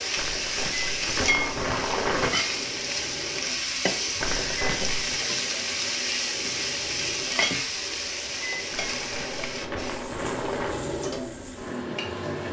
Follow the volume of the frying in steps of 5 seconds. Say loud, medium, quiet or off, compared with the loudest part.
loud, loud, quiet.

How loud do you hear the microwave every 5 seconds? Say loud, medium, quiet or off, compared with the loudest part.
medium, medium, loud.